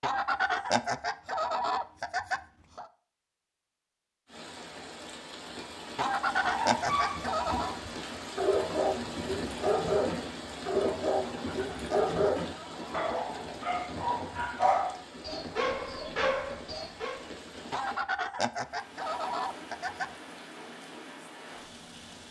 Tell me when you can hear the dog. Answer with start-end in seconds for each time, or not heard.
6.3-17.2.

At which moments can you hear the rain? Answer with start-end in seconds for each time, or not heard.
4.2-22.2.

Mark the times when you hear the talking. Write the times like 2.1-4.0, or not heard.
not heard.